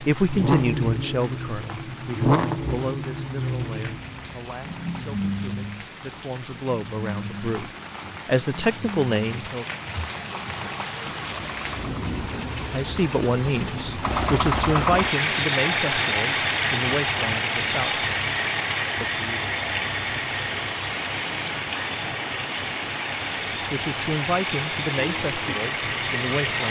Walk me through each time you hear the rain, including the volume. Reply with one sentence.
You can hear the rain from 0.0 to 26.6 s, getting louder.